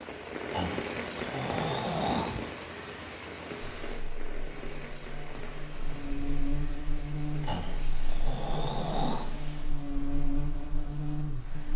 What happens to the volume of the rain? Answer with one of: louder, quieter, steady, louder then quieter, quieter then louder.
quieter.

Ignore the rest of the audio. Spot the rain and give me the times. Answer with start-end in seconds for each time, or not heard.
0.0-11.7.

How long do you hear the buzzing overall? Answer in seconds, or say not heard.
8 s.